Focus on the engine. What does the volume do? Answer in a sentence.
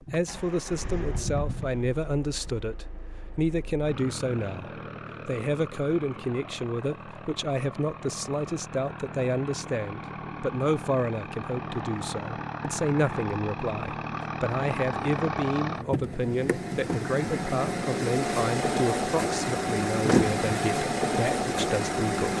The volume of the engine goes up.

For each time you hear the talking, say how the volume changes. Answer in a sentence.
The talking can be heard from 0.0 to 22.3 s, at a steady volume.